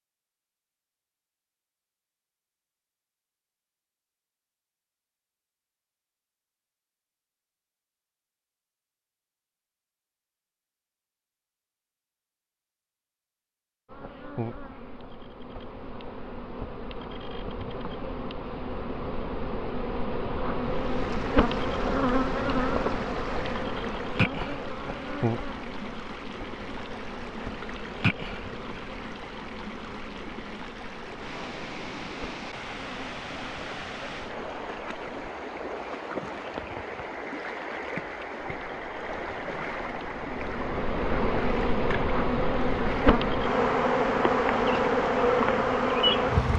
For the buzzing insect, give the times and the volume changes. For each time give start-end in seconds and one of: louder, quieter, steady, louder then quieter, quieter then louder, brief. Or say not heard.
13.8-35.4 louder then quieter
38.4-46.5 louder.